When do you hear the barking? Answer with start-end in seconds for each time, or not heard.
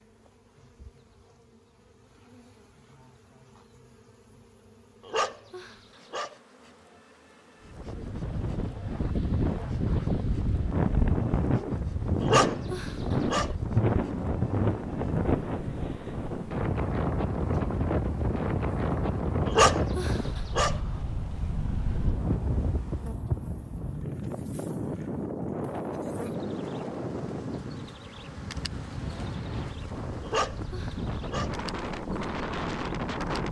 5.0-6.3, 12.2-13.5, 19.4-20.8, 30.2-31.6.